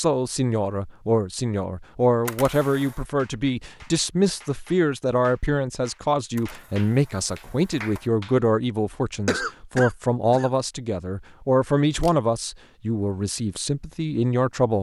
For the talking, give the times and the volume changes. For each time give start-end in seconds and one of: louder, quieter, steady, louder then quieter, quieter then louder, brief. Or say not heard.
0.0-14.7 steady.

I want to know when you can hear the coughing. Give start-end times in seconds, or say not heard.
9.2-10.5.